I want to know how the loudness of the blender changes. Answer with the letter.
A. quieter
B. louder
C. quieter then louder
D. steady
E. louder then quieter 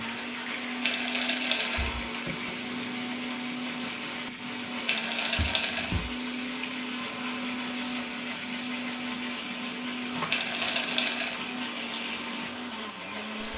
D.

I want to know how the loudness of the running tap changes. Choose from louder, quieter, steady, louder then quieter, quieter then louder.
steady.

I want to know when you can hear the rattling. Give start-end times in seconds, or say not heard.
0.8-1.9, 4.8-6.0, 10.3-11.3.